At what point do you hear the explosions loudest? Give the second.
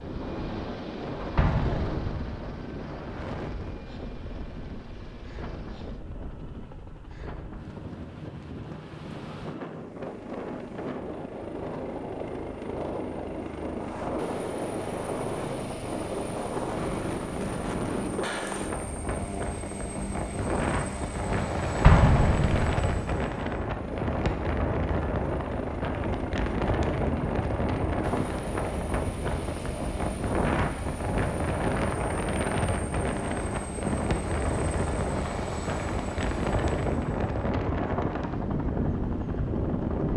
22 s.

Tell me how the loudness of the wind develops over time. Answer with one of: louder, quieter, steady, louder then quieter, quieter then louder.
louder.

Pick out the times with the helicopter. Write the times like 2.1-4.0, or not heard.
0.0-40.1.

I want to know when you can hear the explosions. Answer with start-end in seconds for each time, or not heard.
1.4-2.6, 21.8-23.1.